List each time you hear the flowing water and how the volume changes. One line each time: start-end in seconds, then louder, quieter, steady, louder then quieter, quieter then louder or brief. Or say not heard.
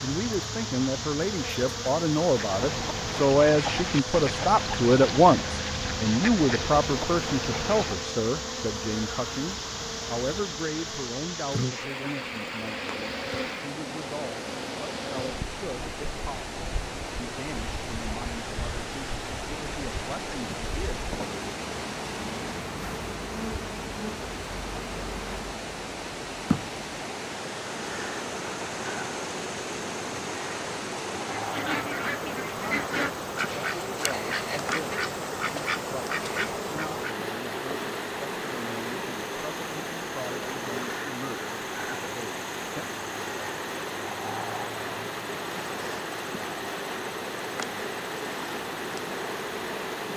0.0-50.1 steady.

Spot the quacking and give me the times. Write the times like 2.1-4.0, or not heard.
2.2-8.2, 31.2-37.0.